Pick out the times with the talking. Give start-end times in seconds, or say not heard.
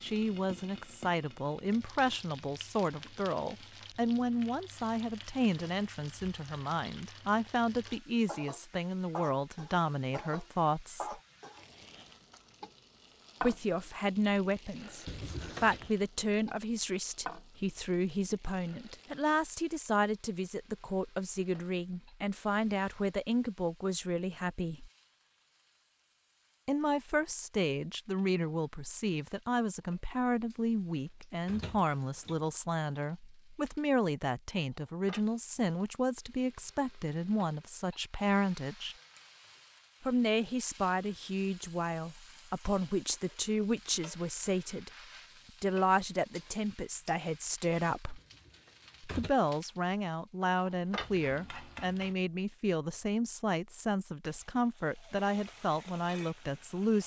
0.0-11.2, 13.4-24.9, 26.6-39.0, 40.0-44.9, 45.6-48.2, 49.0-57.0.